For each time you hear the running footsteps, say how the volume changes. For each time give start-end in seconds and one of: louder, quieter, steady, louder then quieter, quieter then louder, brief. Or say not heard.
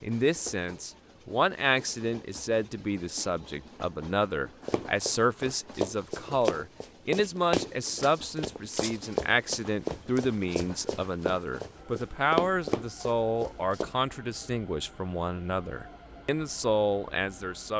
4.7-13.9 quieter then louder.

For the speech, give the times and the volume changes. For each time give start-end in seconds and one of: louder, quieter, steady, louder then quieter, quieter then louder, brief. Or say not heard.
0.0-17.7 steady.